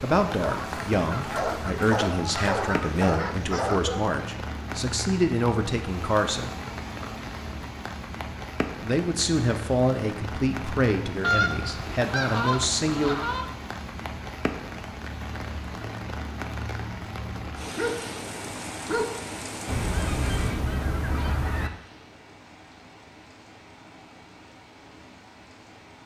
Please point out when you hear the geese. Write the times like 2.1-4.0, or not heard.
0.4-3.1, 11.2-13.5, 19.6-21.7.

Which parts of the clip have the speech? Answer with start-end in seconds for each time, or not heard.
0.0-6.5, 8.8-13.2.